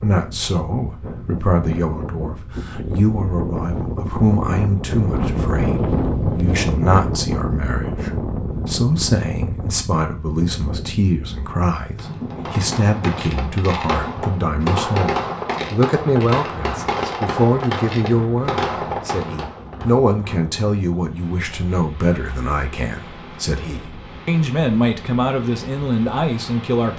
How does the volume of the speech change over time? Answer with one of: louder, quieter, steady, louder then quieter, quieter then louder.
steady.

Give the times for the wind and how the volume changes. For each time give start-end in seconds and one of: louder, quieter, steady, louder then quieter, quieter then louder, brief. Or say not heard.
0.0-26.9 quieter.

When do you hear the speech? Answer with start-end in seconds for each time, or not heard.
0.0-26.9.